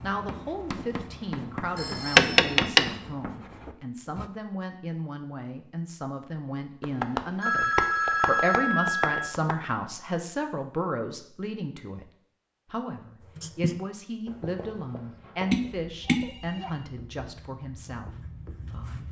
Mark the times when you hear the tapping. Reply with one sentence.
The tapping can be heard from 2.1 to 2.9 s, from 6.8 to 9.7 s and from 15.5 to 16.5 s.